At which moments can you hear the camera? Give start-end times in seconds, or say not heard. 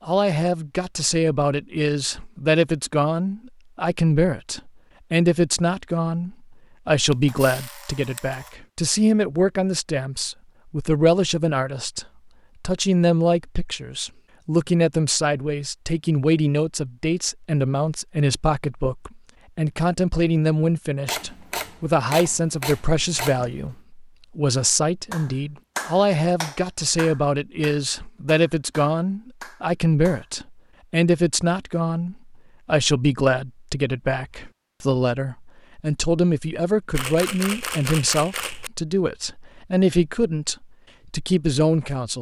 7.1-8.6, 21.1-23.8, 36.9-38.7.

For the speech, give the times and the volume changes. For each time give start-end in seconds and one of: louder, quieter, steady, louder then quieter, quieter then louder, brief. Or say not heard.
0.0-42.1 steady.